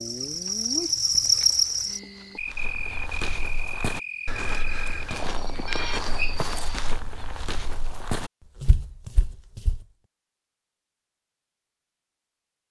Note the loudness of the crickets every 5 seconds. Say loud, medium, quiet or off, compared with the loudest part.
loud, medium, off.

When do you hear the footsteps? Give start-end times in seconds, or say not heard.
2.4-9.8.